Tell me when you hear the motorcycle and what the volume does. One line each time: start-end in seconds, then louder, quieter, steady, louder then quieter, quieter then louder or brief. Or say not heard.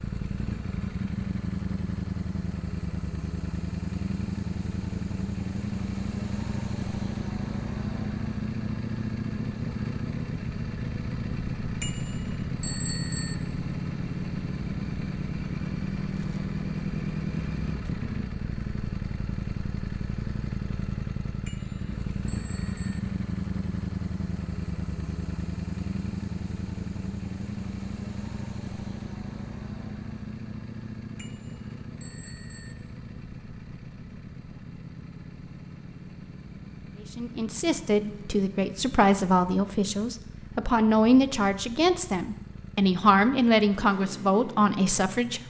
0.0-45.4 quieter.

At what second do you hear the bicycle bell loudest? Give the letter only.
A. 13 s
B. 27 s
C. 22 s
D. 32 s
A.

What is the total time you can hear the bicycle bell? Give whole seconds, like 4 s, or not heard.
5 s.